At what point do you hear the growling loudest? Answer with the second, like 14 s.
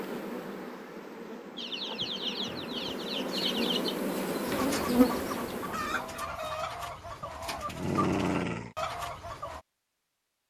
8 s.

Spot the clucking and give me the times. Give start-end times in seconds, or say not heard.
1.6-9.6.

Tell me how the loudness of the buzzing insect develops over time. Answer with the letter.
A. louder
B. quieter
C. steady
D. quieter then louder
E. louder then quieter
A.